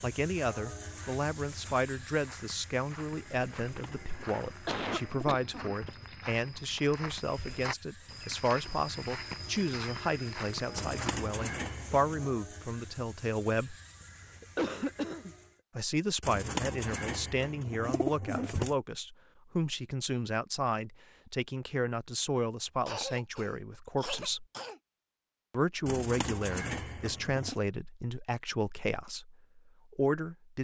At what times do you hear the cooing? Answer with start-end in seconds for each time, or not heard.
3.5-6.2, 10.7-12.3, 16.2-18.8, 25.9-27.6.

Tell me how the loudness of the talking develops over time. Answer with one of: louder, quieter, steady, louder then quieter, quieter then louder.
steady.